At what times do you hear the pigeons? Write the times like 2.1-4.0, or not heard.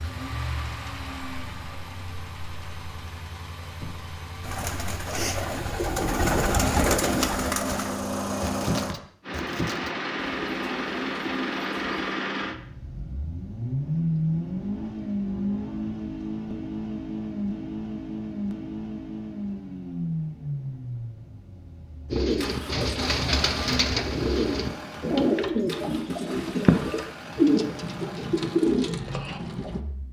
4.4-12.2, 22.1-29.8.